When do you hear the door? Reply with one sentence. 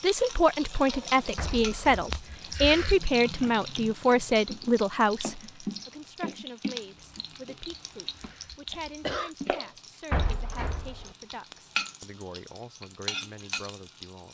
The door can be heard from 1.4 to 2.1 s and from 10.1 to 11.1 s.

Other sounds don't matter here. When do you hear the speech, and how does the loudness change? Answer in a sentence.
You can hear the speech from 0.0 to 14.2 s, getting quieter.